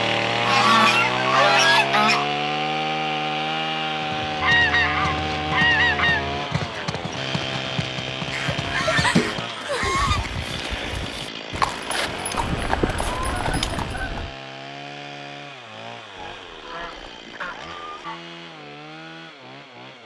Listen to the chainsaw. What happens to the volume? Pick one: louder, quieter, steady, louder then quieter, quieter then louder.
quieter.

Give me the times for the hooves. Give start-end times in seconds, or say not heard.
4.0-14.2.